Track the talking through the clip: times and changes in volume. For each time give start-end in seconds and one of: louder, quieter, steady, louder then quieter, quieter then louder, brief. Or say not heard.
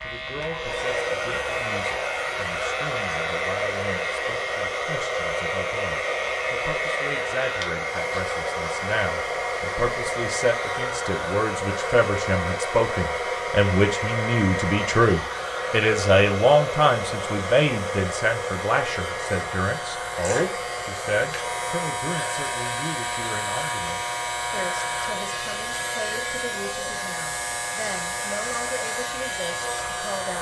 0.0-30.3 louder then quieter.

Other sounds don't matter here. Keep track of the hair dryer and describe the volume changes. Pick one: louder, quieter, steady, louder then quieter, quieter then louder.
quieter.